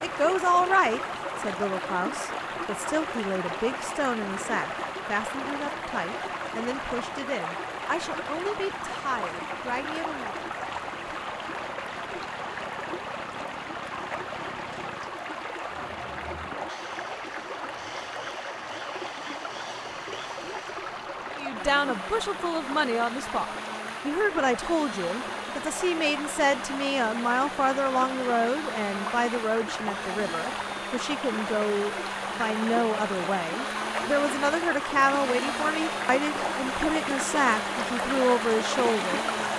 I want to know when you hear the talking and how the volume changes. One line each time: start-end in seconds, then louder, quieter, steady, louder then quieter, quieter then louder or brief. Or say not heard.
0.0-10.3 quieter
21.4-23.4 brief
24.1-39.2 steady.